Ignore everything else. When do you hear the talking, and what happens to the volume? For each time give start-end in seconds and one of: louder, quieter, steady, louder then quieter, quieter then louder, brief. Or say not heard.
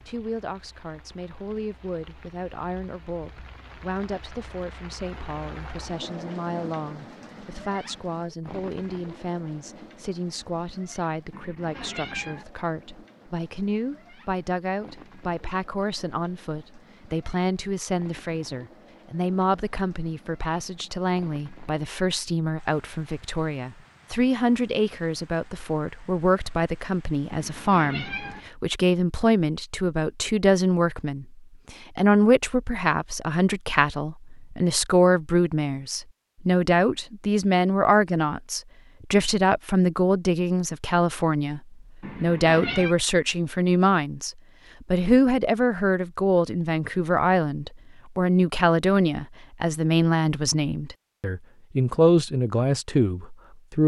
0.1-53.8 louder.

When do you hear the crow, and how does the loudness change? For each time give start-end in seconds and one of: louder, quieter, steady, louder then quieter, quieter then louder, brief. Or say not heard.
not heard.